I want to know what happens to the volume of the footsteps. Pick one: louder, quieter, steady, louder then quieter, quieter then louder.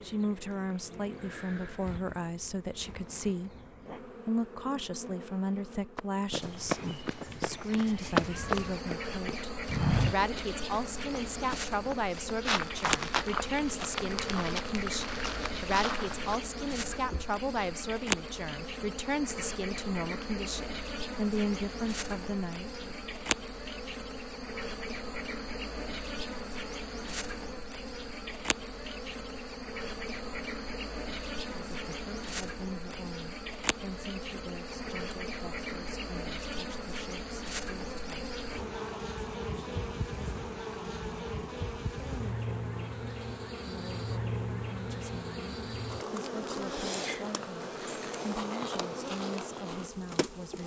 louder then quieter.